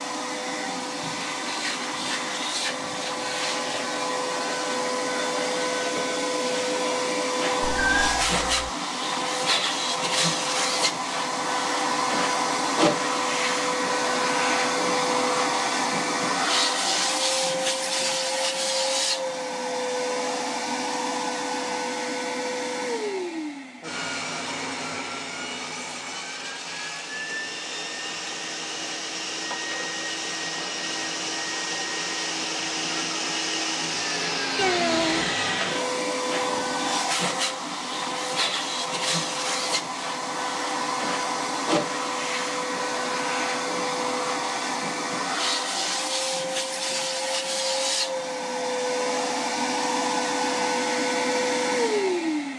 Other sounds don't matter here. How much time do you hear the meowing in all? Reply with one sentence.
The meowing can be heard for 2 seconds in total.